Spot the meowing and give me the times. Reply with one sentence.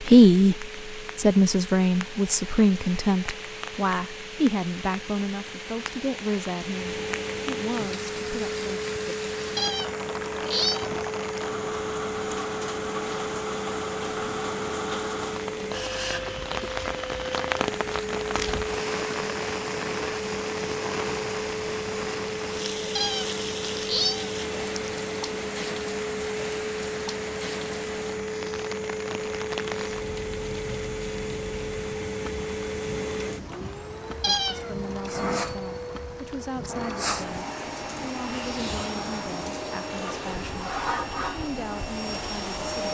You can hear the meowing from 9.6 to 11.4 s, from 22.9 to 24.9 s and from 34.2 to 34.8 s.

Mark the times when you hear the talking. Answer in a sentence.
You can hear the talking from 0.0 to 8.8 s and from 34.2 to 42.8 s.